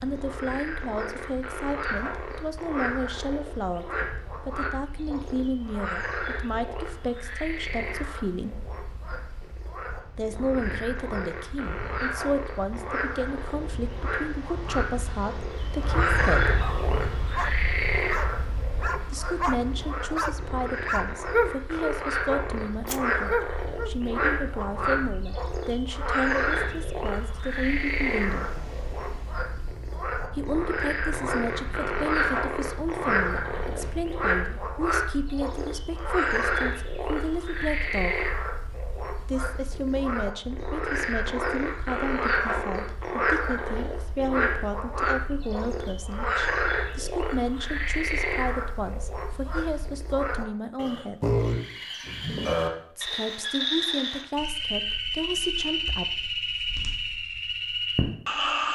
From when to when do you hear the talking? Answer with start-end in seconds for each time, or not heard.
0.0-8.7, 10.2-16.6, 19.1-28.6, 30.4-38.3, 39.2-51.4, 53.0-56.1.